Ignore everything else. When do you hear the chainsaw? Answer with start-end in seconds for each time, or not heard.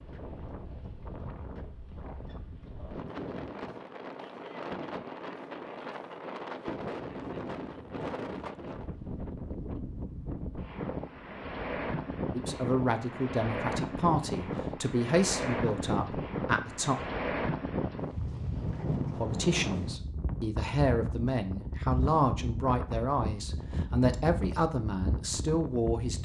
not heard.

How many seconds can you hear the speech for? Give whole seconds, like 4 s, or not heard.
12 s.